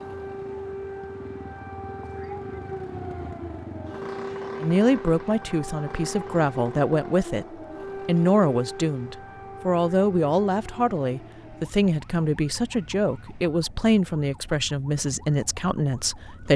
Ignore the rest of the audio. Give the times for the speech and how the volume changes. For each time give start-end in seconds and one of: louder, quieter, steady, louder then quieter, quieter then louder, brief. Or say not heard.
4.6-7.5 brief
8.1-16.5 steady.